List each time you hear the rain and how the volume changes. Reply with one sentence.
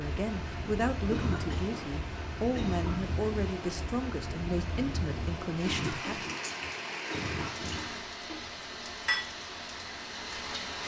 The rain can be heard from 0.0 to 10.8 s, at a steady volume.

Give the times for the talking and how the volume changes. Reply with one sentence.
You can hear the talking from 0.0 to 6.2 s, at a steady volume.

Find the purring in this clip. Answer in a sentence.
The purring can't be heard in this clip.